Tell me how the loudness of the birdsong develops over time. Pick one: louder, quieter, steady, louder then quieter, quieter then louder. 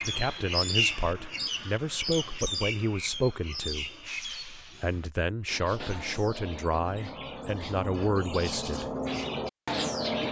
quieter then louder.